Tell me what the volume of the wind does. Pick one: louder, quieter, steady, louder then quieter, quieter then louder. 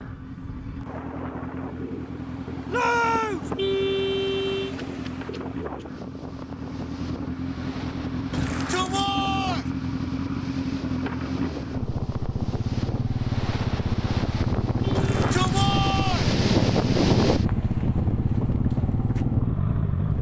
louder.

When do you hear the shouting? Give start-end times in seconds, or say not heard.
2.6-3.5, 8.3-9.7, 14.9-16.3.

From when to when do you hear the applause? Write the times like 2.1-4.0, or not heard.
not heard.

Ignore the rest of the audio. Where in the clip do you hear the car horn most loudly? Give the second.
4 s.